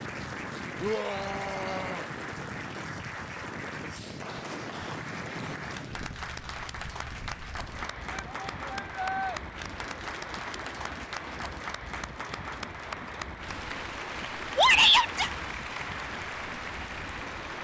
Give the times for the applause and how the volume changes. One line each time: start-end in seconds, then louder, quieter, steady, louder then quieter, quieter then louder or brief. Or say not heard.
0.0-17.5 steady.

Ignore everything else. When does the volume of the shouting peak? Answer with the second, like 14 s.
15 s.